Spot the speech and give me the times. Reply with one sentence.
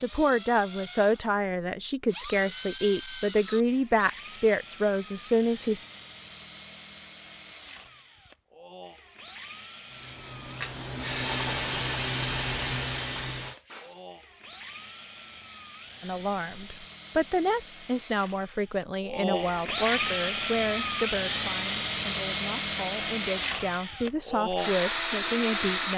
The speech can be heard from 0.0 to 5.8 s and from 16.0 to 25.9 s.